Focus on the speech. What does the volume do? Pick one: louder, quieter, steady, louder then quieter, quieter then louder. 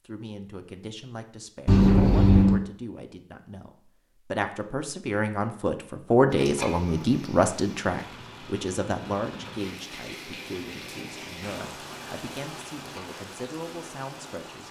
louder then quieter.